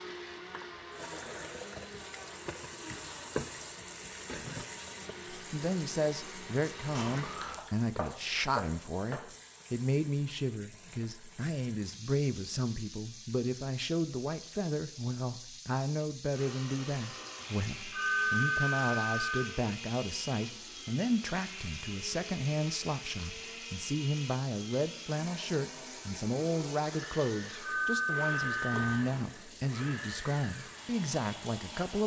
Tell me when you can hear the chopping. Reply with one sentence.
The chopping can be heard from 8.0 to 9.3 s.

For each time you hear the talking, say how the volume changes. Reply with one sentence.
The talking can be heard from 5.3 to 32.0 s, at a steady volume.